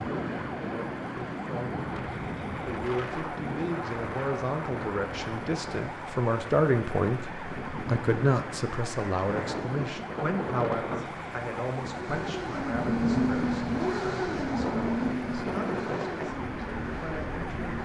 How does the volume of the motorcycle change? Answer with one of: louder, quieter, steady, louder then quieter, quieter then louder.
quieter.